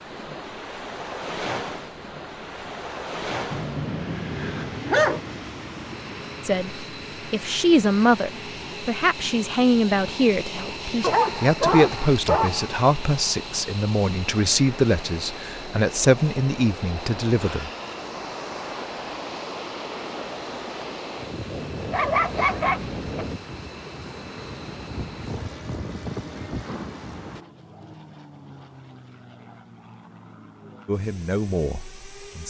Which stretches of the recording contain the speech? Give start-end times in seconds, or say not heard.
6.4-17.7, 30.9-32.4.